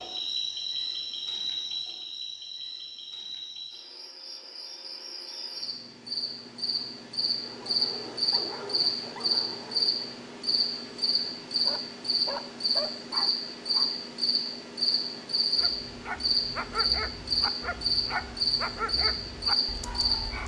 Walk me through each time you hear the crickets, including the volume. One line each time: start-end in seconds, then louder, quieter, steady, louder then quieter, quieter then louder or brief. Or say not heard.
0.0-20.4 louder.